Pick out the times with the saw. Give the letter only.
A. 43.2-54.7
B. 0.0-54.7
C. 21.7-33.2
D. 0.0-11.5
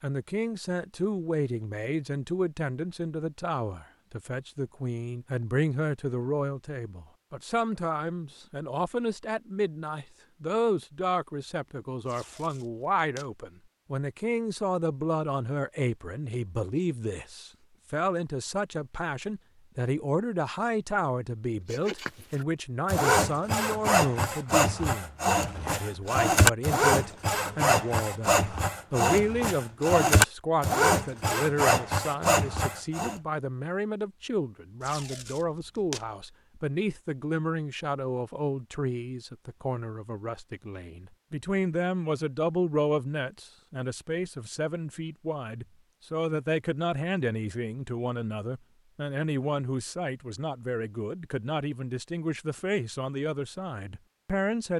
C.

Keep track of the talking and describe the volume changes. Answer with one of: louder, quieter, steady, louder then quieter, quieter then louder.
steady.